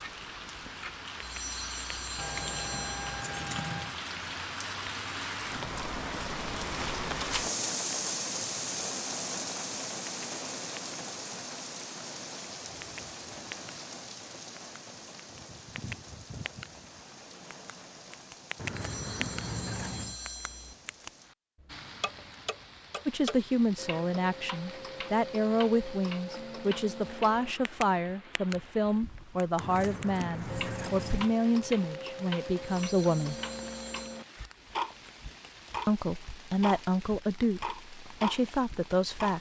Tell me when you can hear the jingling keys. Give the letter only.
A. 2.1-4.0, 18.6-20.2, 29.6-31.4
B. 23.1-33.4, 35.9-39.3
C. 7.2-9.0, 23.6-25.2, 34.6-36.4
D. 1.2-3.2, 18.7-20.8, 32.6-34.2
A.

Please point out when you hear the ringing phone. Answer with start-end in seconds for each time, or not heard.
1.2-3.2, 18.7-20.8, 32.6-34.2.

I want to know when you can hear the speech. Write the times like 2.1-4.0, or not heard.
23.1-33.4, 35.9-39.3.